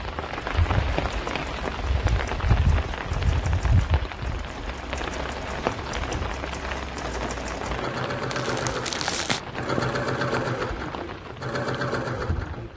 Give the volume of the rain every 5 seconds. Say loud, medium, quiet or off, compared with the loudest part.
loud, loud, medium.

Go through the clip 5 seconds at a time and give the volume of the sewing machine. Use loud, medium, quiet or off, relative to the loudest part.
quiet, loud, loud.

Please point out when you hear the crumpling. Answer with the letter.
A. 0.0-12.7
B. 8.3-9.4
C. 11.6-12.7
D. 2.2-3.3
B.